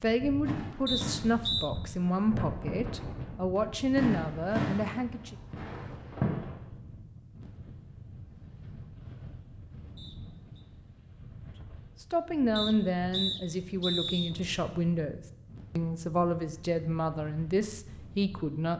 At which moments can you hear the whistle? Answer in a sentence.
The whistle can be heard from 0.8 to 1.7 s, from 9.9 to 10.7 s and from 12.6 to 14.3 s.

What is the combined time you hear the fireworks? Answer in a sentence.
The fireworks can be heard for 6 seconds in total.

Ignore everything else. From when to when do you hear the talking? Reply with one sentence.
The talking can be heard from 0.0 to 5.3 s and from 12.0 to 18.7 s.